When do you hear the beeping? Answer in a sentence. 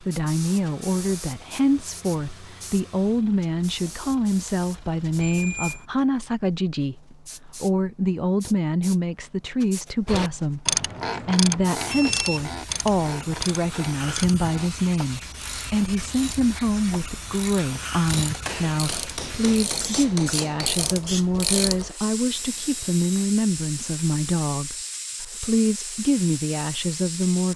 The beeping can be heard from 5.2 to 5.8 s, from 11.9 to 12.4 s and from 22.3 to 23.2 s.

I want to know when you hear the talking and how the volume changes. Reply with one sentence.
You can hear the talking from 0.0 to 27.5 s, at a steady volume.